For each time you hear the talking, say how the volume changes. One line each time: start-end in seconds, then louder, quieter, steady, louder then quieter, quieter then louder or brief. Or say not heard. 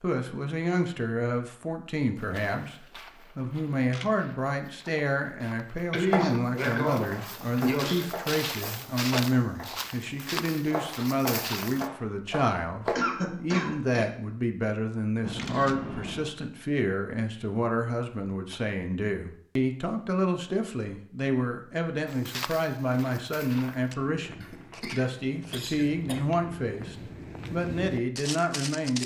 0.0-29.0 steady.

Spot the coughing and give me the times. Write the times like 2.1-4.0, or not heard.
5.9-8.1, 12.9-14.1, 24.4-26.2.